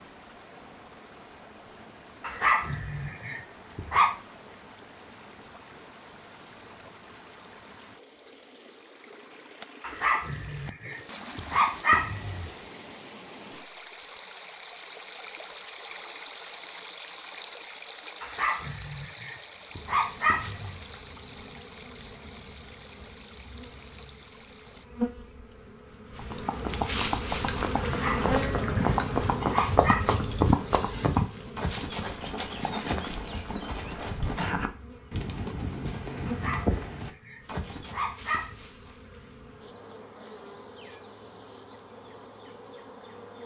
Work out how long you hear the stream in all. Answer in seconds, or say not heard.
25 s.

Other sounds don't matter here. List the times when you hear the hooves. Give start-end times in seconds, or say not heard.
26.1-38.0.